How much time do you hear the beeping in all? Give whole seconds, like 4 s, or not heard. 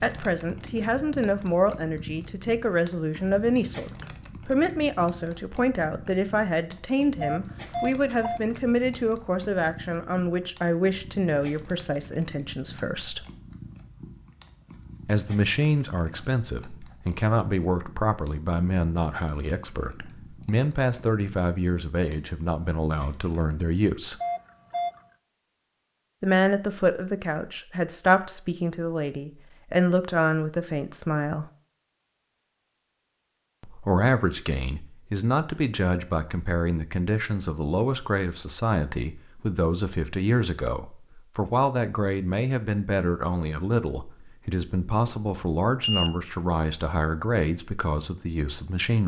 3 s.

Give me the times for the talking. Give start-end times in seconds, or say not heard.
0.0-13.2, 15.1-24.1, 26.2-31.4, 33.6-49.0.